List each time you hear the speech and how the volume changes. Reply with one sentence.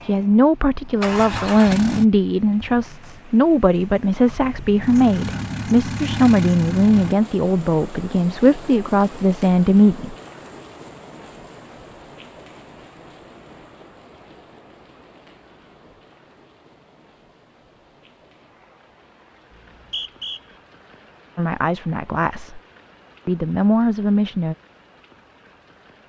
You can hear the speech from 0.1 to 10.2 s, at a steady volume; briefly from 21.4 to 22.6 s; and briefly from 23.2 to 24.6 s.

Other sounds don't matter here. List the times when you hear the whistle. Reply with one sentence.
You can hear the whistle from 19.5 to 20.4 s.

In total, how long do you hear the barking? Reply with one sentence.
The barking can't be heard in this clip.